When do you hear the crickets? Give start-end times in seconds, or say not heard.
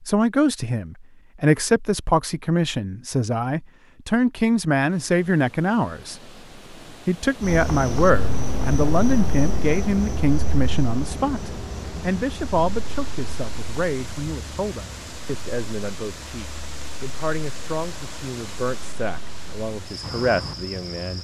7.5-21.1.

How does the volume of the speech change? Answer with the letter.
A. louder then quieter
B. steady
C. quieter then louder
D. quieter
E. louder
D.